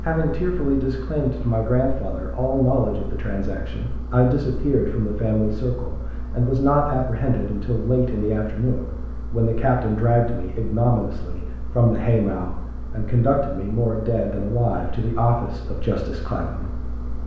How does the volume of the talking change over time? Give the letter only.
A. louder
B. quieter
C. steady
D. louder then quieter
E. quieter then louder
C.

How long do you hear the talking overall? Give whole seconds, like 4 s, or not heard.
17 s.